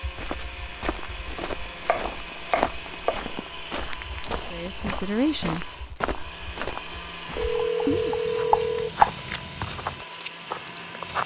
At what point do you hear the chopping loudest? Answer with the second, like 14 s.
9 s.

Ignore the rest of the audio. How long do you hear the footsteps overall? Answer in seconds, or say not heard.
11 s.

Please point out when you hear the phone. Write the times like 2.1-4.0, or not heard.
7.3-8.9.